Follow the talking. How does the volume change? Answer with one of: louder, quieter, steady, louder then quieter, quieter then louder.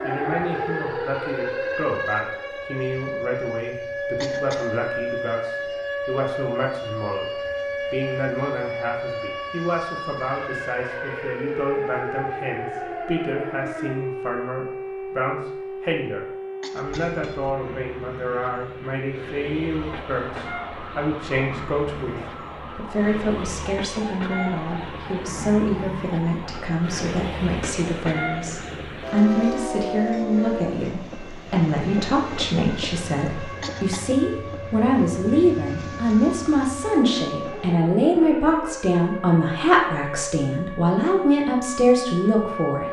louder.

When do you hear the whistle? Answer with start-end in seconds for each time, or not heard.
not heard.